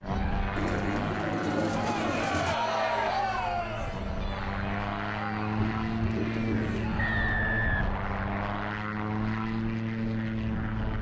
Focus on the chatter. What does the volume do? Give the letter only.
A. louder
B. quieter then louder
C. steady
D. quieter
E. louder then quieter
E.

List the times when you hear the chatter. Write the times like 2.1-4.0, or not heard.
0.0-7.5.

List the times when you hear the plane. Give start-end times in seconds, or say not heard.
0.0-10.9.